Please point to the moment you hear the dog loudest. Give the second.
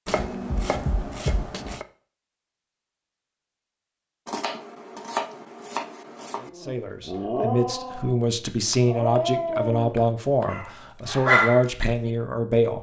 11 s.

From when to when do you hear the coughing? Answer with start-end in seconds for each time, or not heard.
not heard.